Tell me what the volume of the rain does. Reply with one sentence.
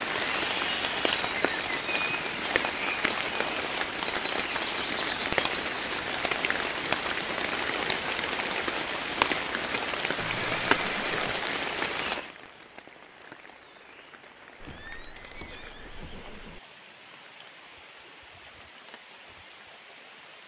The loudness of the rain goes down.